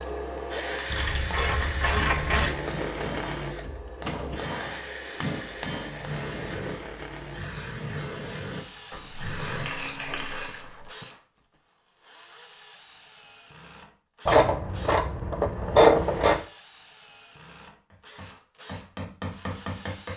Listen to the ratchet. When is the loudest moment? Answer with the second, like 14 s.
16 s.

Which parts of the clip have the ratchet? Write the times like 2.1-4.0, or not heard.
0.9-2.5, 8.9-10.8, 14.2-16.4.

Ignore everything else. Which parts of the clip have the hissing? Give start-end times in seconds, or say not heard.
6.0-10.5.